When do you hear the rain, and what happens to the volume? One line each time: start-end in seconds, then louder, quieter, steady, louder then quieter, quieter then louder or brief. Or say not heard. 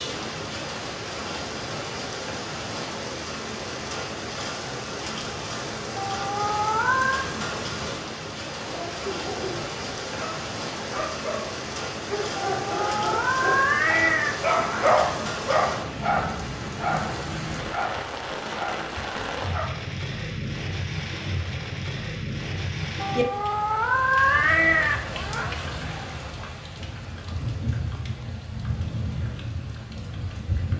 0.0-30.7 steady.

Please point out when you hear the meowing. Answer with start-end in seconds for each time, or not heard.
6.0-7.2, 12.4-14.9, 23.0-25.6.